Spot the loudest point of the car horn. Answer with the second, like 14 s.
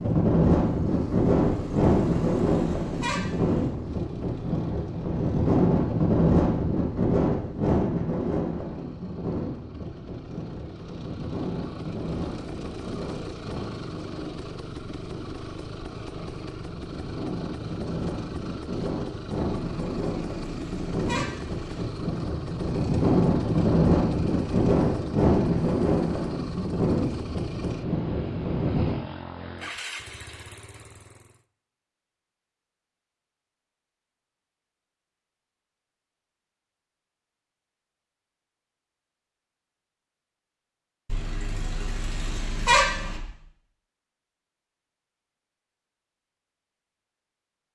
43 s.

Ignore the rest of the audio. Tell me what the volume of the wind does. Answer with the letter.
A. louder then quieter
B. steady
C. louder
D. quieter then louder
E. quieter
D.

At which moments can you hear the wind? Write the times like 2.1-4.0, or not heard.
0.0-28.9.